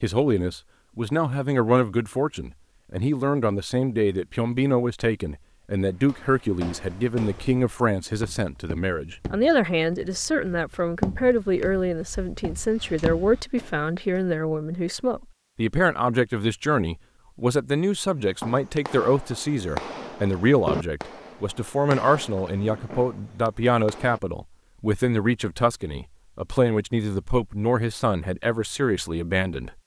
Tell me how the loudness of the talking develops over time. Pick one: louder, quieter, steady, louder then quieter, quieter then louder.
steady.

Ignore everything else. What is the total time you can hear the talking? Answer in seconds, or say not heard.
30 s.